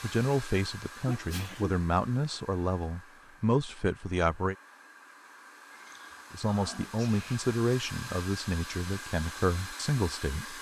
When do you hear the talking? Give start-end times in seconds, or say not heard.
0.0-4.5, 6.3-10.5.